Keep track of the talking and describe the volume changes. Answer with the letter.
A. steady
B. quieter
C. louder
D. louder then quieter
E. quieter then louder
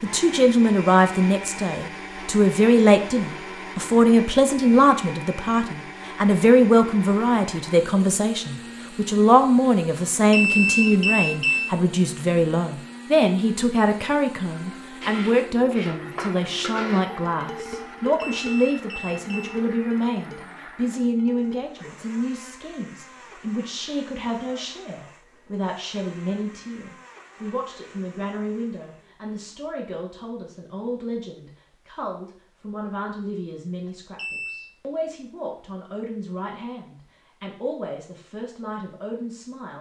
B.